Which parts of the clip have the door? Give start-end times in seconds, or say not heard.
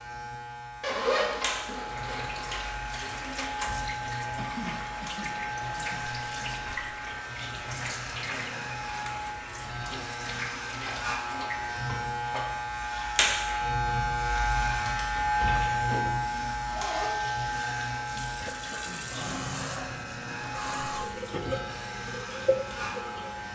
not heard.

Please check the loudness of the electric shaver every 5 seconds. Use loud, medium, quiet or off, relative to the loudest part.
medium, medium, loud, loud, medium.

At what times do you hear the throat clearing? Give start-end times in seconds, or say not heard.
4.3-6.0, 18.4-19.5.